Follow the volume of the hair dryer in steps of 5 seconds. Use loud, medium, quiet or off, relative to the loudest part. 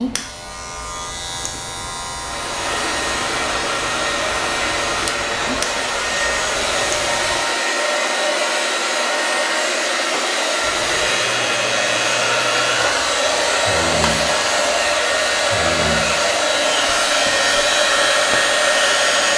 medium, loud, loud, loud.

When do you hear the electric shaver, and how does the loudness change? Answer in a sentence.
The electric shaver can be heard from 0.0 to 7.5 s, at a steady volume; and from 10.6 to 19.3 s, at a steady volume.